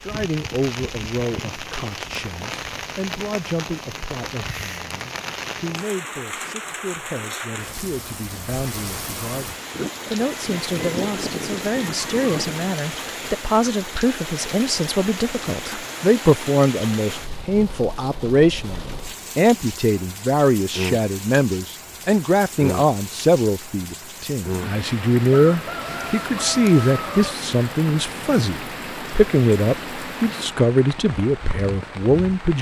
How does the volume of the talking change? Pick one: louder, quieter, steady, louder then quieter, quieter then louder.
louder.